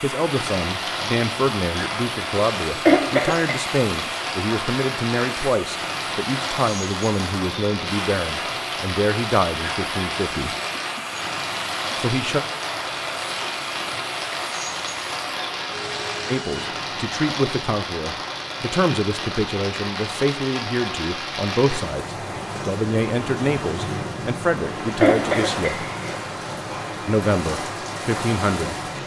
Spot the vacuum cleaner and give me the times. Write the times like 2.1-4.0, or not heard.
0.0-16.7.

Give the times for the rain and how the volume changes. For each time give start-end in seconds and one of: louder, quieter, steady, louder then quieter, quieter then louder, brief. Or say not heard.
0.1-29.0 steady.